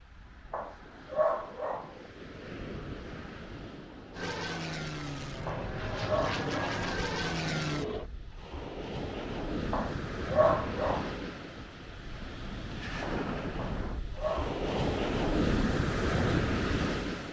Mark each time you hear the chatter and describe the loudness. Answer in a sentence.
You can't hear the chatter here.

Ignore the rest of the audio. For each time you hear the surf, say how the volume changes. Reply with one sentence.
The surf can be heard from 0.0 to 17.2 s, getting louder.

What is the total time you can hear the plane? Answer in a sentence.
You can hear the plane for 4 seconds altogether.